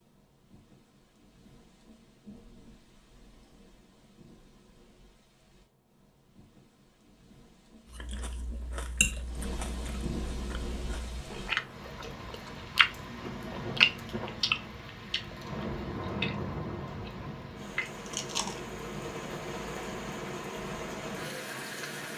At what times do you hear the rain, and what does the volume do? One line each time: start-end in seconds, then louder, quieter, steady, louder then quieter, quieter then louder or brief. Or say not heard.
0.0-22.1 louder.